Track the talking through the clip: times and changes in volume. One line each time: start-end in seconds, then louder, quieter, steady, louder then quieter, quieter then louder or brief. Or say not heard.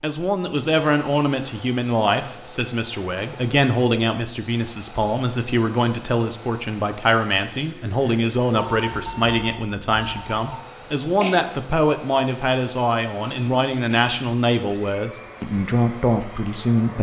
0.0-16.9 steady.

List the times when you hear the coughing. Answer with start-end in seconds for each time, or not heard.
10.8-11.4.